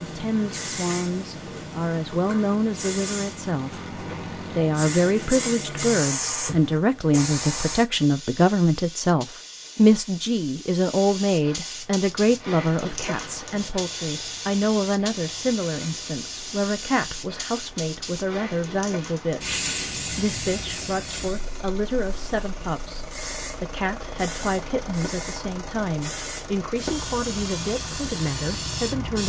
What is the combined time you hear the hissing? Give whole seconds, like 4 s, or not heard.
29 s.